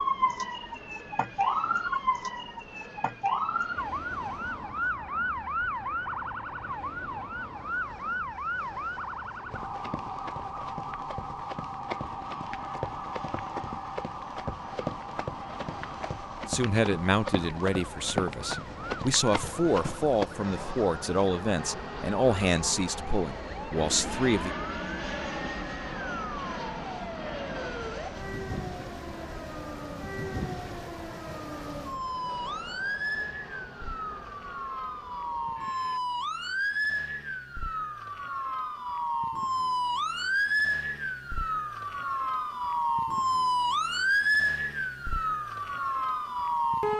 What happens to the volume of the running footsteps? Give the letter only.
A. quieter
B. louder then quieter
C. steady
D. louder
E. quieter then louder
D.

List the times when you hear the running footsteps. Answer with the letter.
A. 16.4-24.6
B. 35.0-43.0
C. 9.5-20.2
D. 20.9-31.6
C.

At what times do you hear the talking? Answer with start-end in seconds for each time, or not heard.
16.4-24.6.